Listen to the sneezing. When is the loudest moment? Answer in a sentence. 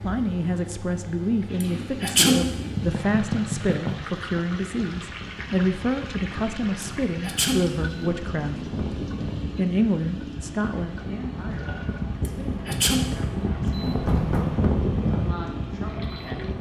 The loudest moment of the sneezing is at 2 seconds.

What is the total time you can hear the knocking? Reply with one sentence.
The knocking can be heard for 2 seconds in total.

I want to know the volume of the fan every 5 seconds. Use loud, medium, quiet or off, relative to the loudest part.
quiet, medium, loud, loud.